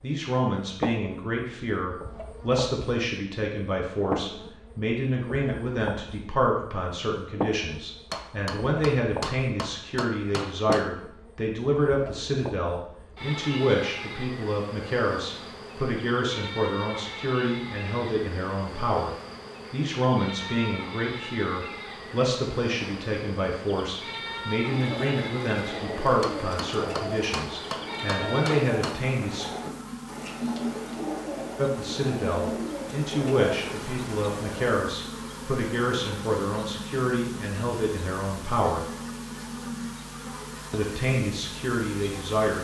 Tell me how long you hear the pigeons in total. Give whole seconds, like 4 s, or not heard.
10 s.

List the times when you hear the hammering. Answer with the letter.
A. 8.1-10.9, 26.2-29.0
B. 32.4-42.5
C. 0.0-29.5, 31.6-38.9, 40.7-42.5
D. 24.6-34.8
A.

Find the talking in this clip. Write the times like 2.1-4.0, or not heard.
0.0-29.5, 31.6-38.9, 40.7-42.5.